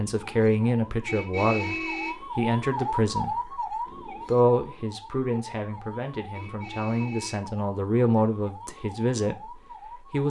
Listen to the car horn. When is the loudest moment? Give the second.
2 s.